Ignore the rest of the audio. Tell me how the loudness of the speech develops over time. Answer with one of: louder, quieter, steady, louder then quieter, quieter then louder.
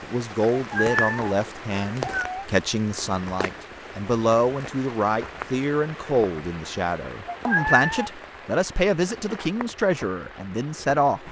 steady.